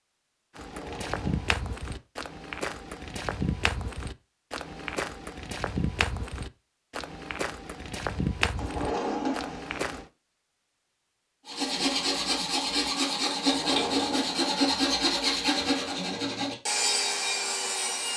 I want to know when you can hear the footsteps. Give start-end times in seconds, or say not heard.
0.6-10.1.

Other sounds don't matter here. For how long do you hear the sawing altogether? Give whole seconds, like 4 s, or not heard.
7 s.